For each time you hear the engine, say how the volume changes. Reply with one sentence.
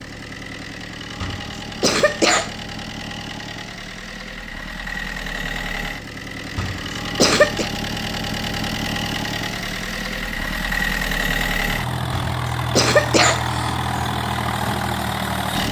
You can hear the engine from 0.0 to 15.6 s, getting louder.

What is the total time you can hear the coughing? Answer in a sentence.
You can hear the coughing for 4 seconds altogether.